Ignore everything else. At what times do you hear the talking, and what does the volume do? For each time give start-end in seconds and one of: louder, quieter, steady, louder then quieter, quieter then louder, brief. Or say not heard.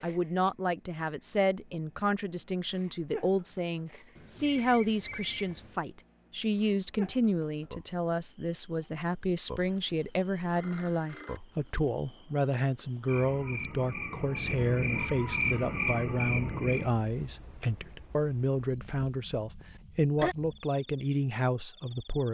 0.0-22.3 steady.